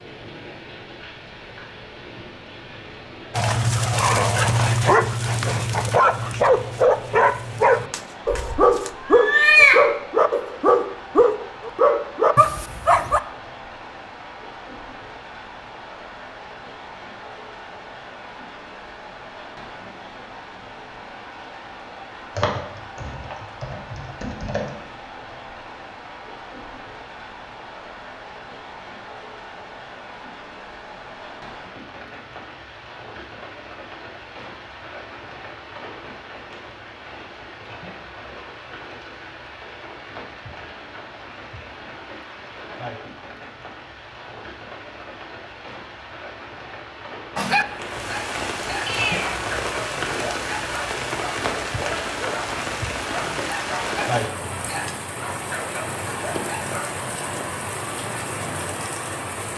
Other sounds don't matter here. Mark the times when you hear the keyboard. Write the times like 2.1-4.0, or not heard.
22.4-24.8.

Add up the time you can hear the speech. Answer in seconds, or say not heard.
not heard.